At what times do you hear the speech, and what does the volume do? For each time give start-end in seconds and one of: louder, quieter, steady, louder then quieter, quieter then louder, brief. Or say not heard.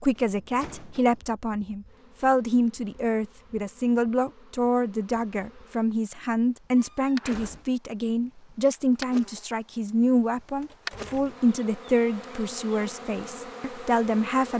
0.0-14.5 steady.